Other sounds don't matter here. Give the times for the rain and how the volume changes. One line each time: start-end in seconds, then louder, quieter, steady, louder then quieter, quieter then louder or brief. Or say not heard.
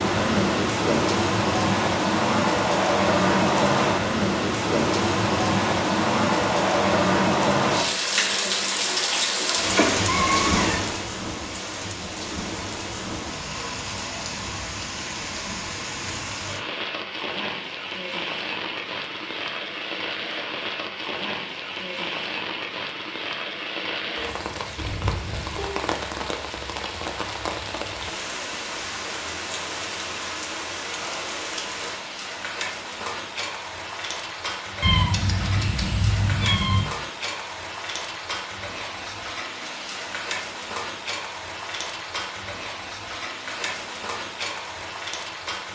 0.0-45.6 quieter.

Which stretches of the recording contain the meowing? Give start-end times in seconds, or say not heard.
9.8-10.8, 24.8-25.7, 34.8-36.9.